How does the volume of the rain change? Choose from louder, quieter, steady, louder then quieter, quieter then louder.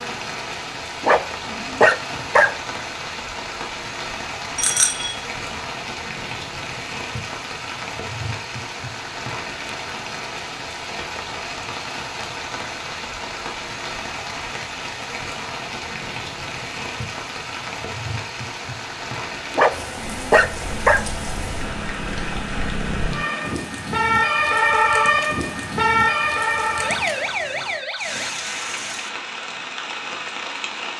steady.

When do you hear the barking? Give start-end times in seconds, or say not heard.
1.0-2.5, 19.6-21.1.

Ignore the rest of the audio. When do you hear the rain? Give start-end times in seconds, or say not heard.
0.0-30.9.